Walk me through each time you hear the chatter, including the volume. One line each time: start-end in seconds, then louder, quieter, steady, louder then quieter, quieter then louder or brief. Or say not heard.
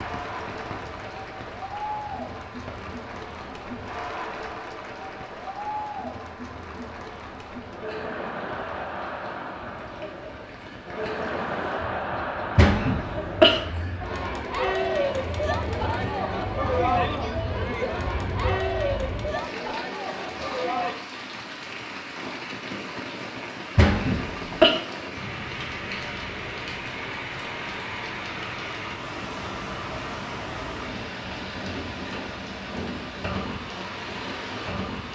0.0-21.0 louder.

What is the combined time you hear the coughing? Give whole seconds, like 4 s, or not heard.
2 s.